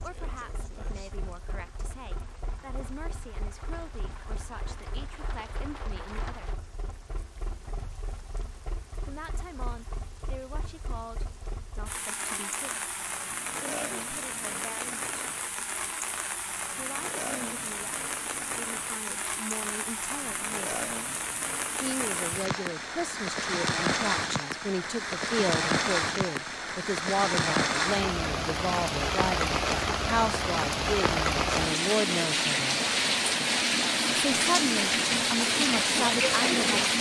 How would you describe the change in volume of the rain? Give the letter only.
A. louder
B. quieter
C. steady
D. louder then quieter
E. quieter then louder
A.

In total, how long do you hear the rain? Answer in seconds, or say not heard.
37 s.